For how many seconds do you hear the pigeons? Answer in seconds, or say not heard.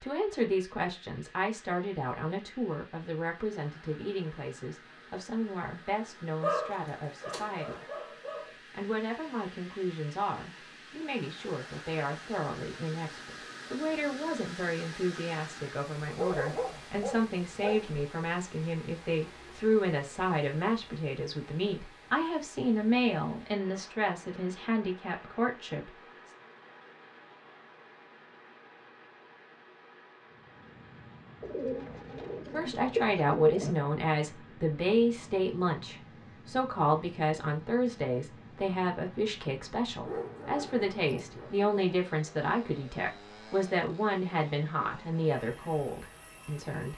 2 s.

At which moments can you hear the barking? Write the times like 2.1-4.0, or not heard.
6.4-8.5, 16.1-17.8, 40.0-41.7.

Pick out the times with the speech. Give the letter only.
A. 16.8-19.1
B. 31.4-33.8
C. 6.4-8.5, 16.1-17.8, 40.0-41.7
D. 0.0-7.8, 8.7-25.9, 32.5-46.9
D.